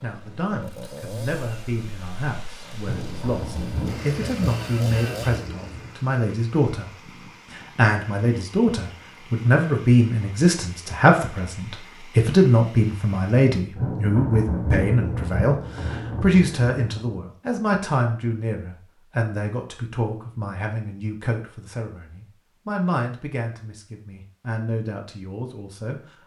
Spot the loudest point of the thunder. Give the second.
15 s.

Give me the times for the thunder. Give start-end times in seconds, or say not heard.
2.8-6.0, 13.8-17.1.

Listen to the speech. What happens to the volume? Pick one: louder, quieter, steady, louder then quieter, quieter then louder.
louder then quieter.